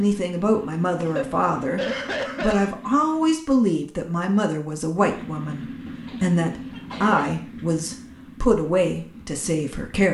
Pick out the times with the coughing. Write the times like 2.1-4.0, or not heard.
1.0-2.8, 6.0-7.3.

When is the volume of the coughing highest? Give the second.
2 s.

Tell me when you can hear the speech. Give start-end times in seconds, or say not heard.
0.0-10.0.